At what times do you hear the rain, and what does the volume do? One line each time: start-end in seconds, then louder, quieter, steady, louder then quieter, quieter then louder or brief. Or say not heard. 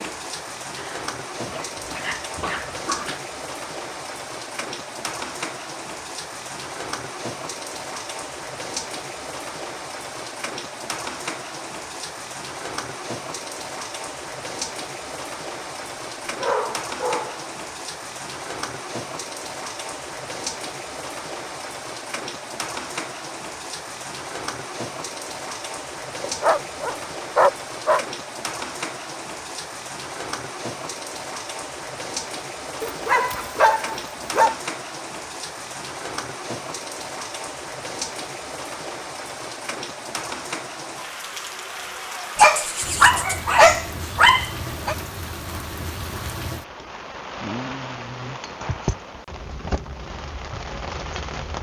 0.0-51.5 steady.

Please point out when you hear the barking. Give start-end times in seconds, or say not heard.
0.8-3.2, 16.4-17.4, 26.2-28.1, 32.8-34.5, 42.4-45.0.